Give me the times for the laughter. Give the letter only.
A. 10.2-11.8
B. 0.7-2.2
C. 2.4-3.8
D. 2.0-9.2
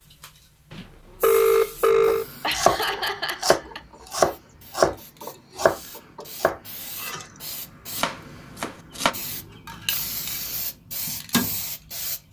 C.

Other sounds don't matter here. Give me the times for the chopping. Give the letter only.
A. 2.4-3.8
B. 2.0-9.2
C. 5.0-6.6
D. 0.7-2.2
B.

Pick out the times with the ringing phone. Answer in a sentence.
You can hear the ringing phone from 0.7 to 2.2 s.